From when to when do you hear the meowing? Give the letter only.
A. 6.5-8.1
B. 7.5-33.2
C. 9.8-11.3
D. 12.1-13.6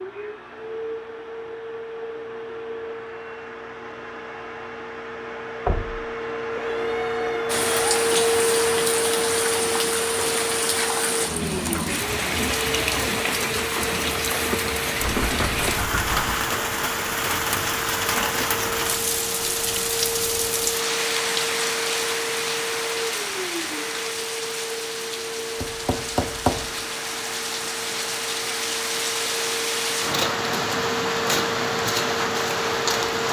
A.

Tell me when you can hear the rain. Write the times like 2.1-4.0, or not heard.
7.5-33.2.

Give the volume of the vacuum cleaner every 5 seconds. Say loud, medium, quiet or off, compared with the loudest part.
medium, loud, medium, medium, medium, medium, medium.